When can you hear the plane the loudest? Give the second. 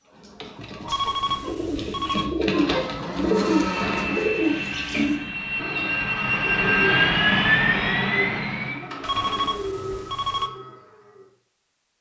7 s.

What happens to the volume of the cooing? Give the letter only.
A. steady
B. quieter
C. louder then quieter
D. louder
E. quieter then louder
C.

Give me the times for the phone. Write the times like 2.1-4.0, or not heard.
0.8-2.3, 9.0-10.5.